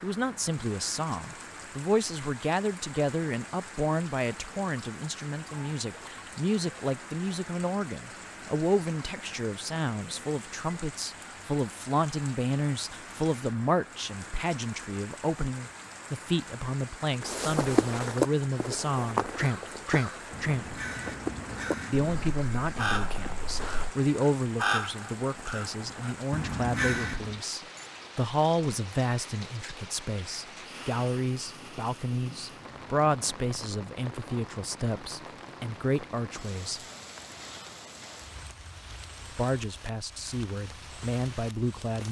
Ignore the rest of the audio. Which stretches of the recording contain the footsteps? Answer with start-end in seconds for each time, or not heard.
17.2-23.9.